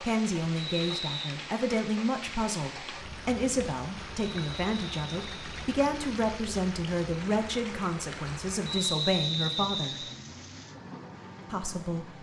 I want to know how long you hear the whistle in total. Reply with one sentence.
The whistle can be heard for 3 seconds in total.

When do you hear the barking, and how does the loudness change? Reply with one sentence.
You can't hear the barking here.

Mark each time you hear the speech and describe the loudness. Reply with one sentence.
The speech can be heard from 0.0 to 10.1 s, at a steady volume; and briefly from 11.4 to 12.1 s.